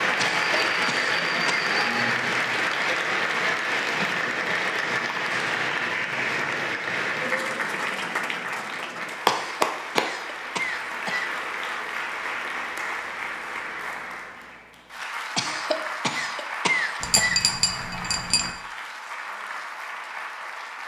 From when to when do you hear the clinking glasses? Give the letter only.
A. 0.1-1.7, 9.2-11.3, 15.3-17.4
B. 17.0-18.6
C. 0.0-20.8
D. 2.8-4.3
B.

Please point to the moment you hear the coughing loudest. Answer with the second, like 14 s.
17 s.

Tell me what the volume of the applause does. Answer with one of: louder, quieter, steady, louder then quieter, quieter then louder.
quieter.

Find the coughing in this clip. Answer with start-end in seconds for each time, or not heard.
0.1-1.7, 9.2-11.3, 15.3-17.4.